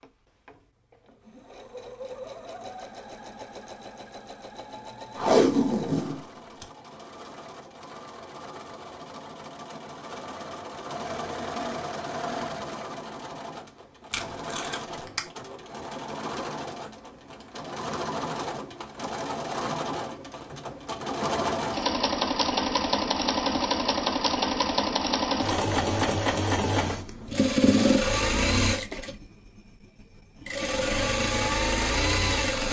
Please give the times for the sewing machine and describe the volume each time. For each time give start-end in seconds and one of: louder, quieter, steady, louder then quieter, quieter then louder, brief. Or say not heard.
0.0-32.6 louder.